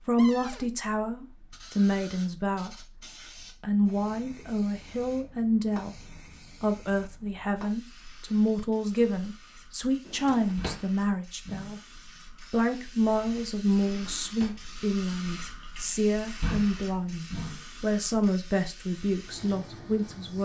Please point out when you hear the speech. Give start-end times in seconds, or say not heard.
0.1-3.0, 3.6-11.8, 12.5-20.4.